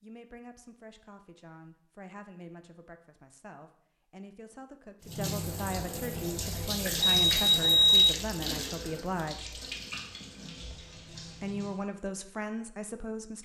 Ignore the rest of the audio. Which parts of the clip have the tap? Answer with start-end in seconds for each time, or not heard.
5.0-11.9.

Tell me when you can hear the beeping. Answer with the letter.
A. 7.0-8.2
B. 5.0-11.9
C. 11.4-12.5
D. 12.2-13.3
A.